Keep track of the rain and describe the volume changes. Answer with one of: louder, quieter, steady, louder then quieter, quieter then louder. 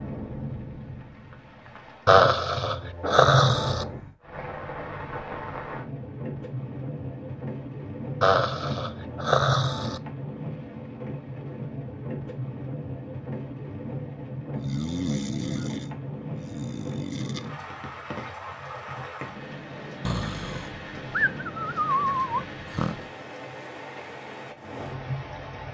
steady.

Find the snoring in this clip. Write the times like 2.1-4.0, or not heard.
2.0-3.9, 8.2-10.0, 14.6-17.4, 20.0-22.9.